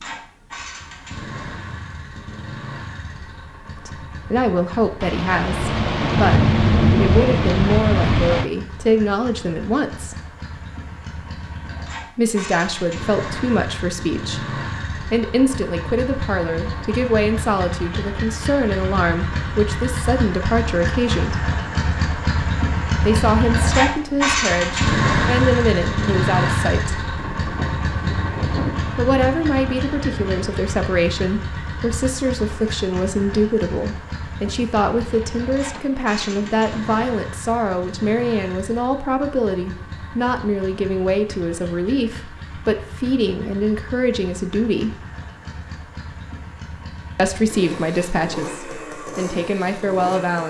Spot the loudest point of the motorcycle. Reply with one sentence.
The volume of the motorcycle peaks at 25 seconds.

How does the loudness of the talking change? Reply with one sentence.
The loudness of the talking stays about the same.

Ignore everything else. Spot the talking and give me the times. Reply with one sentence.
You can hear the talking from 3.9 to 10.2 s, from 12.2 to 21.5 s, from 23.1 to 26.9 s, from 28.9 to 45.0 s and from 47.1 to 50.4 s.